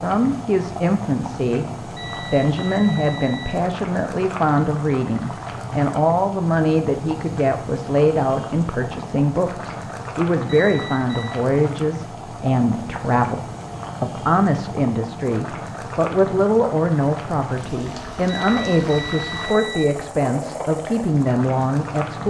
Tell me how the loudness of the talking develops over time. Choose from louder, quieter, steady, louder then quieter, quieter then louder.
steady.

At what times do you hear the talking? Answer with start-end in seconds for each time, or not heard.
0.0-13.4, 14.0-22.2.